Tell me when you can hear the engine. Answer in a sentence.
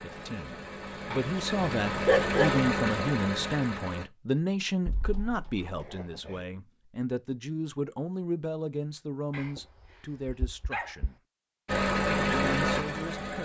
You can hear the engine from 0.0 to 4.0 s and from 11.7 to 13.4 s.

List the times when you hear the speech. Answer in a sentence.
The speech can be heard from 0.0 to 11.2 s and from 12.3 to 13.4 s.